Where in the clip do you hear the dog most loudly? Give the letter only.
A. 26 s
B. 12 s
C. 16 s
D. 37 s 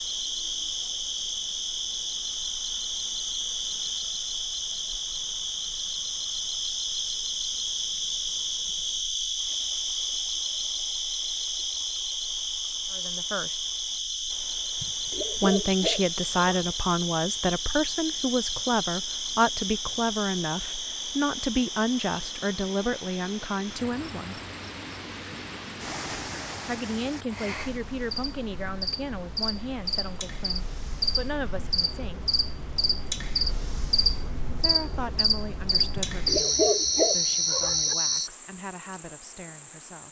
D.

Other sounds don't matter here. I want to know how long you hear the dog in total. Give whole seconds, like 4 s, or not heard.
4 s.